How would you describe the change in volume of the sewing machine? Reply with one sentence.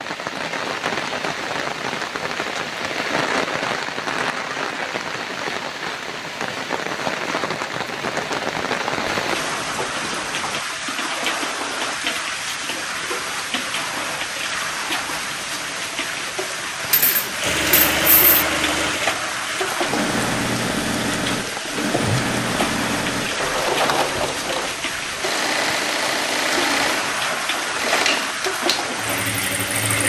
The volume of the sewing machine stays about the same.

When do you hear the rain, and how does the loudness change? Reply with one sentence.
You can hear the rain from 0.0 to 30.0 s, at a steady volume.